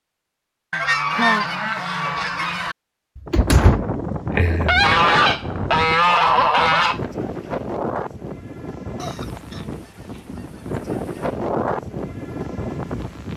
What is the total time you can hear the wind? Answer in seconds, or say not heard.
10 s.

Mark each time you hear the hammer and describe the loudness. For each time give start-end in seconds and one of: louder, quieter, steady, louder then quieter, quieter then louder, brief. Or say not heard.
not heard.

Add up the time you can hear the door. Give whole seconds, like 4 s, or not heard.
2 s.